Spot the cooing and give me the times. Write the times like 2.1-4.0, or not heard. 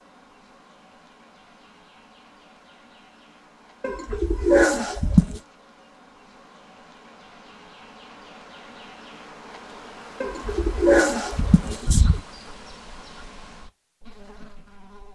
3.8-5.4, 10.2-12.2.